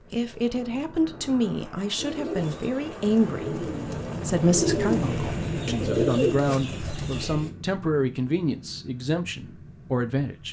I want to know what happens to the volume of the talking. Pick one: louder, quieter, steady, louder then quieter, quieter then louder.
steady.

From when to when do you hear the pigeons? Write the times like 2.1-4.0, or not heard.
1.9-7.5.